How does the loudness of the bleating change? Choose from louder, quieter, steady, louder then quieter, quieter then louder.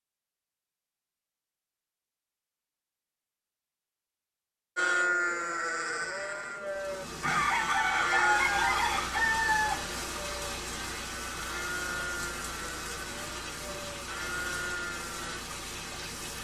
quieter.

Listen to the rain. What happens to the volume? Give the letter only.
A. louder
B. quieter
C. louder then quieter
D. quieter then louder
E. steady
E.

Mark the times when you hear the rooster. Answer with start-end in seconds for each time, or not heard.
7.2-9.8.